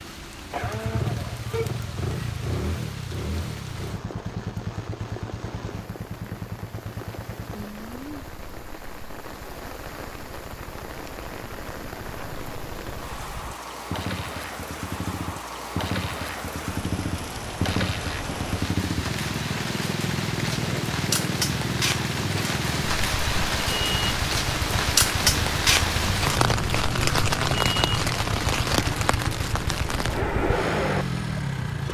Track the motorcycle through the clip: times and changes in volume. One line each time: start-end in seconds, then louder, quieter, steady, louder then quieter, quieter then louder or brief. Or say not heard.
0.0-31.8 quieter then louder.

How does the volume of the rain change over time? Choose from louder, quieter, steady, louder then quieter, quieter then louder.
louder.